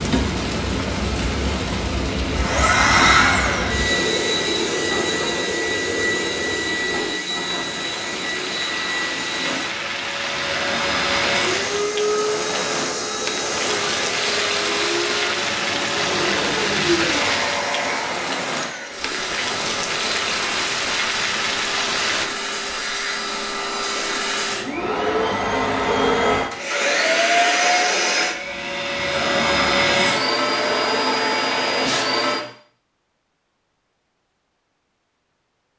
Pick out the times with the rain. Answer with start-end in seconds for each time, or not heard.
0.0-22.3.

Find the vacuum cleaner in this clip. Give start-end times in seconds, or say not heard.
2.1-32.4.